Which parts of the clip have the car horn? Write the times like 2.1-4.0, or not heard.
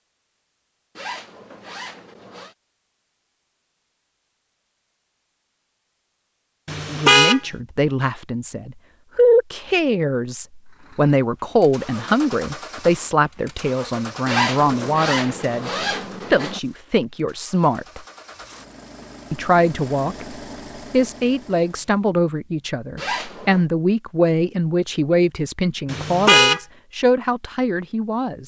6.7-7.4, 25.9-26.6.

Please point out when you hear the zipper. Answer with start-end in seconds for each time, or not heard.
0.9-2.5, 14.2-16.6, 22.9-23.6.